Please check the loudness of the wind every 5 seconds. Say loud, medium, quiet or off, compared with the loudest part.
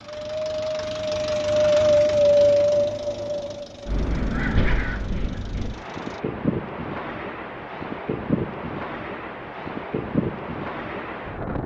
loud, medium, medium.